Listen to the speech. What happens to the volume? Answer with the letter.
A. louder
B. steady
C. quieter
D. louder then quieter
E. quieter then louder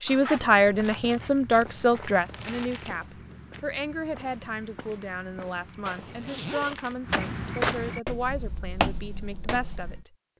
C.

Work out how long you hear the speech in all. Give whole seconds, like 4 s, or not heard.
10 s.